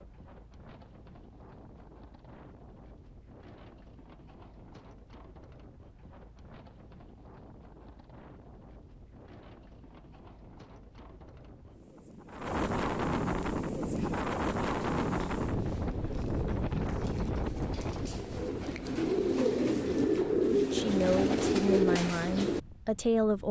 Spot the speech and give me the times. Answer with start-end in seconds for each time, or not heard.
20.5-23.4.